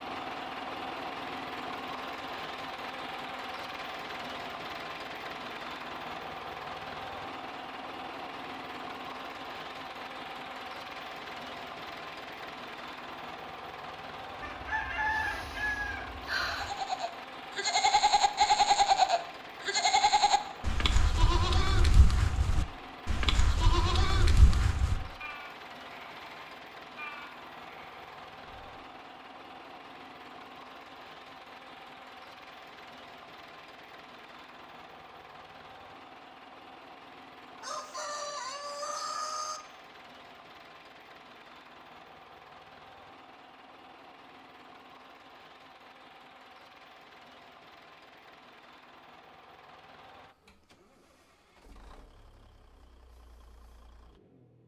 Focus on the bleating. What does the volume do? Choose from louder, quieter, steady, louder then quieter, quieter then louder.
quieter.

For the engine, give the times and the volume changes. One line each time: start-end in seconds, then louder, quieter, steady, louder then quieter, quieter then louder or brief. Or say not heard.
0.0-54.6 quieter.